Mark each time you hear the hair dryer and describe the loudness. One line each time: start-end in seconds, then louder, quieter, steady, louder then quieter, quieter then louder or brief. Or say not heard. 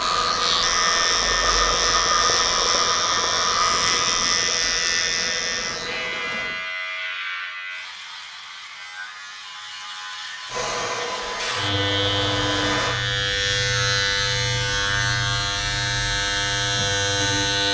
0.0-6.5 quieter
10.4-13.0 brief.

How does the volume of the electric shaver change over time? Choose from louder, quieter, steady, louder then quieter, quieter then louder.
quieter then louder.